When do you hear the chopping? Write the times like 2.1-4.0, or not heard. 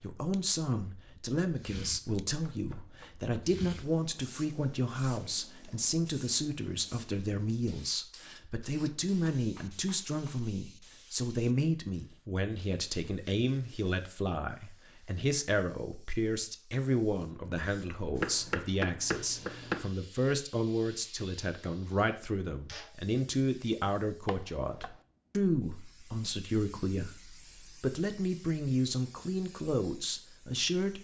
2.0-3.4, 8.8-10.3, 18.1-19.9, 24.2-24.9.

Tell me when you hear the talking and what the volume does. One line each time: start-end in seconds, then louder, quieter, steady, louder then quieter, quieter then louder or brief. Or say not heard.
0.0-30.9 steady.